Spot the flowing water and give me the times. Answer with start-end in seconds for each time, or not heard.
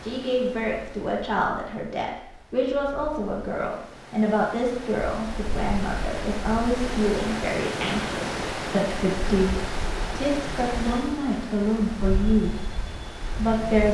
0.0-13.9.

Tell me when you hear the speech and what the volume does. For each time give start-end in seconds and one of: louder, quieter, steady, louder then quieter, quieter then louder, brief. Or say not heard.
0.0-12.6 steady
13.3-13.9 brief.